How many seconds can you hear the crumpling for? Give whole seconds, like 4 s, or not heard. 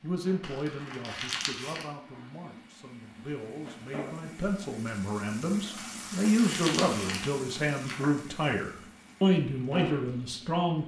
4 s.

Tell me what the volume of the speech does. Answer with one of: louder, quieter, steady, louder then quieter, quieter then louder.
louder.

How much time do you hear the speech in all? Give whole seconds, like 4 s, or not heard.
11 s.